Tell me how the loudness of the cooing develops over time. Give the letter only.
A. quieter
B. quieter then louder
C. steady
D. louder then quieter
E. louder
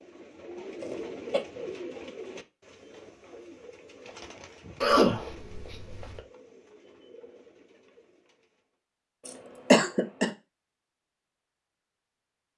A.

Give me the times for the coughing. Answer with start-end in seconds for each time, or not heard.
0.8-1.4, 4.8-6.2, 9.2-10.3.